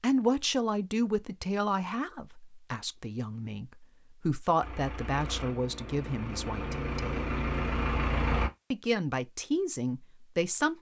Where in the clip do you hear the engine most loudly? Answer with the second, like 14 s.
8 s.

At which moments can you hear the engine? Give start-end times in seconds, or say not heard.
4.6-8.5.